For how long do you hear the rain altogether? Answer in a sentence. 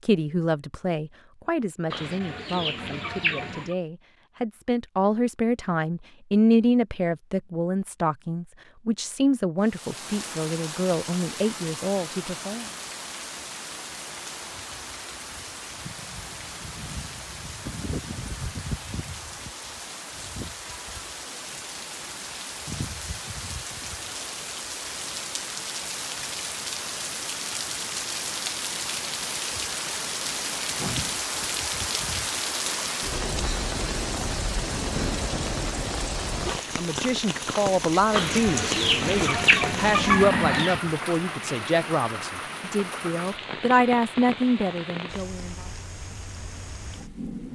The rain can be heard for 38 seconds in total.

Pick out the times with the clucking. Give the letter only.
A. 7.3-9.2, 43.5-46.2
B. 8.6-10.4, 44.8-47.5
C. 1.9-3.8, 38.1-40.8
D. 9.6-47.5
C.